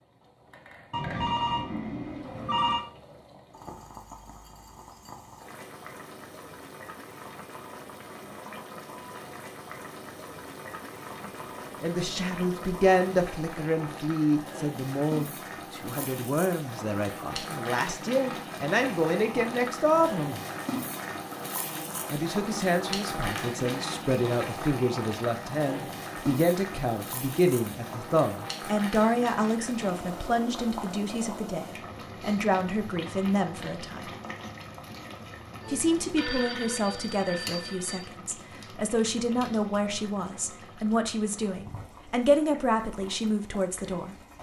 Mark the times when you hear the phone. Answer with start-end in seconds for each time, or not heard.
0.9-2.9, 35.6-38.0.